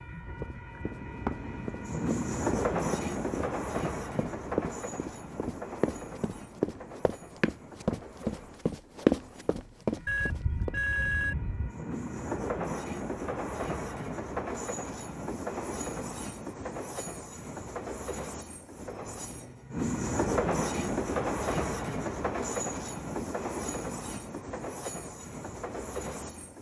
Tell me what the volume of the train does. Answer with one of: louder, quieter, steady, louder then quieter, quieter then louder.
quieter then louder.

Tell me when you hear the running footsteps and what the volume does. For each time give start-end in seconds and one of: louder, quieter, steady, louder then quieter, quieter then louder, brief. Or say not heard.
0.4-10.8 louder.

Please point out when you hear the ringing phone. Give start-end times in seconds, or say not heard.
10.1-11.8.